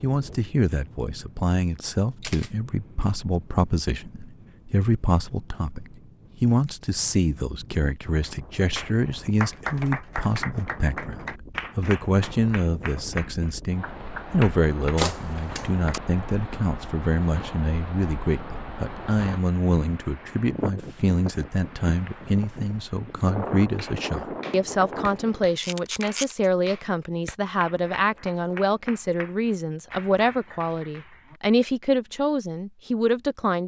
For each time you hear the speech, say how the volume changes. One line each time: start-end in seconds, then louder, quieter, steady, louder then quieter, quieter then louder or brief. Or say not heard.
0.0-33.6 steady.